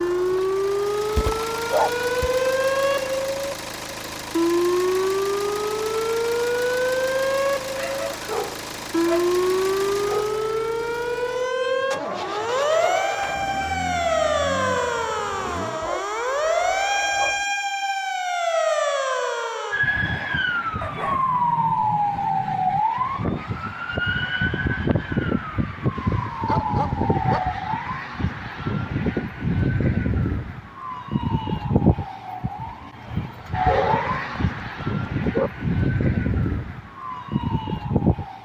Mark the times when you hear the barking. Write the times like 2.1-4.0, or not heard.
1.1-2.4, 7.8-10.2, 15.8-17.4, 20.8-22.8, 25.9-27.6, 33.6-35.5.